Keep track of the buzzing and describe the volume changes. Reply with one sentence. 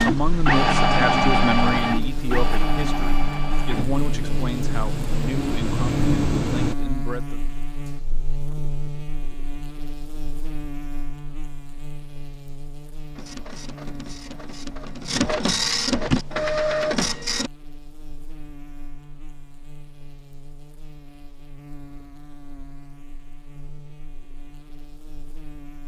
The volume of the buzzing goes down.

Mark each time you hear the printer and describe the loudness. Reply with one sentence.
The printer can be heard from 0.0 to 6.8 s, getting quieter then louder; and from 13.2 to 17.5 s, getting louder.